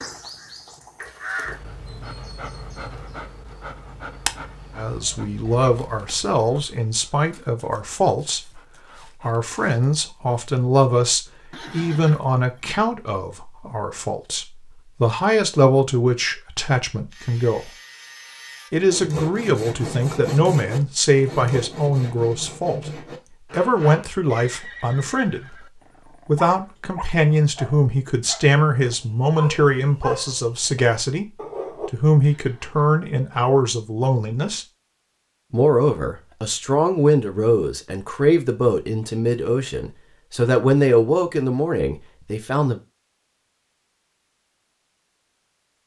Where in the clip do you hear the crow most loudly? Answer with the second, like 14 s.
1 s.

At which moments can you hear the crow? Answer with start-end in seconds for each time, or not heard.
0.0-1.6.